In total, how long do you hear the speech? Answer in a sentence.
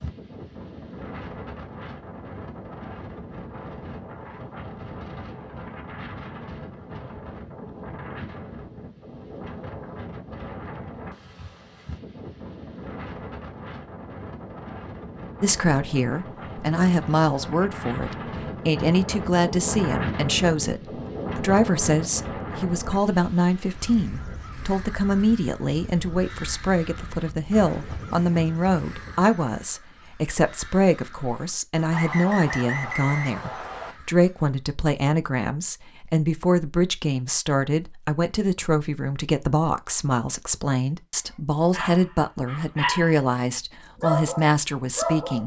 The speech can be heard for 30 seconds in total.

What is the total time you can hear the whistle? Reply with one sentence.
You can hear the whistle for 2 seconds altogether.